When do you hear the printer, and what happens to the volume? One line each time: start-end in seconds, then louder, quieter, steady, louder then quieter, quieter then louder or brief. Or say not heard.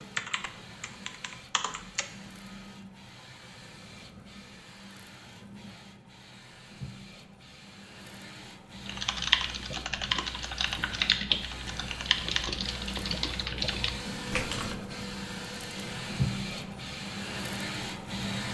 0.0-18.4 louder.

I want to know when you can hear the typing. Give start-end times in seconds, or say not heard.
0.0-2.0, 8.8-14.8.